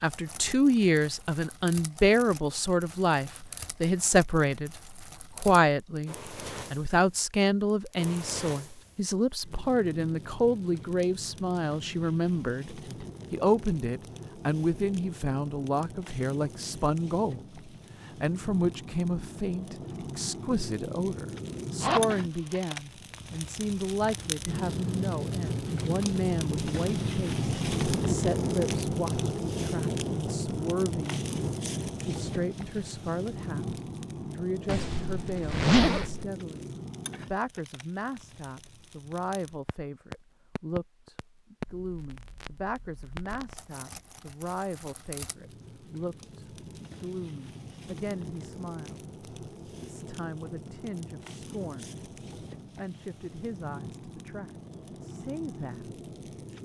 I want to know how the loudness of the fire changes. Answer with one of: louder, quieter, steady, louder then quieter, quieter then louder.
louder then quieter.